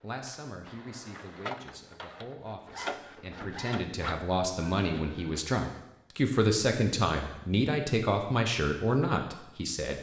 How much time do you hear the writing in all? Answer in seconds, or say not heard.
not heard.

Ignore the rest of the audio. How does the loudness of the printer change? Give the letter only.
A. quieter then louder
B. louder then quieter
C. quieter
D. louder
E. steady
B.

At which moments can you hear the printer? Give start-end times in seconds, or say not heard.
0.0-5.6.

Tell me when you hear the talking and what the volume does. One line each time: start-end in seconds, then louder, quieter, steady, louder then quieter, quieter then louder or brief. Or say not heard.
0.0-9.9 louder.